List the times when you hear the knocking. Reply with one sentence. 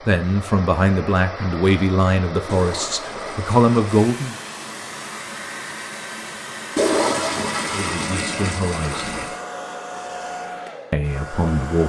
You can't hear the knocking here.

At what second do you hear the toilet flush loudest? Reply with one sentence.
The loudest moment of the toilet flush is at 7 seconds.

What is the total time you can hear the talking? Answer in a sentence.
The talking can be heard for 7 seconds in total.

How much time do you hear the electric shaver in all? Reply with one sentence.
You can't hear the electric shaver here.